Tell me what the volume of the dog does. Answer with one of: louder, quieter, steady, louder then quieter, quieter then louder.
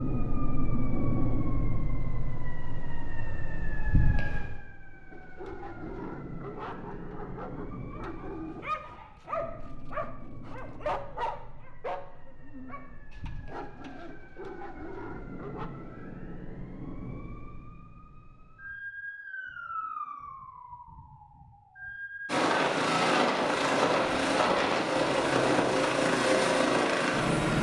louder then quieter.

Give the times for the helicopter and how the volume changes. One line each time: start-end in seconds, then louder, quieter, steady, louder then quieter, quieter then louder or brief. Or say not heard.
22.2-27.5 steady.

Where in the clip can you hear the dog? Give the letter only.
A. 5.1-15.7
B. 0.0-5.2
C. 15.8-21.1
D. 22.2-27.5
A.